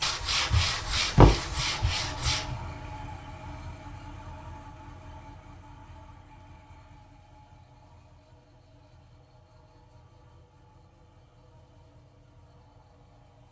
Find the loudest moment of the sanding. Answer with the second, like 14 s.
1 s.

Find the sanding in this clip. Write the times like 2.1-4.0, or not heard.
0.0-2.5.